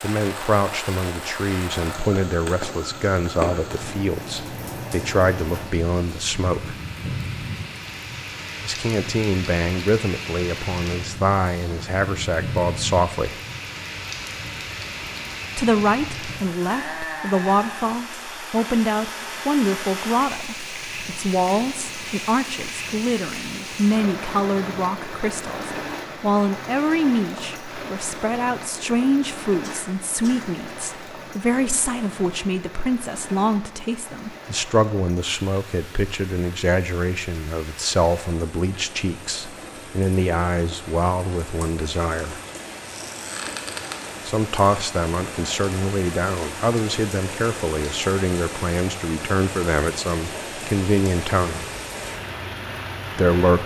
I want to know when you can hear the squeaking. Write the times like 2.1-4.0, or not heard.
42.9-44.0.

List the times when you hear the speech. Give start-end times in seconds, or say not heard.
0.0-6.8, 8.7-13.3, 15.6-42.4, 44.2-51.6, 53.1-53.6.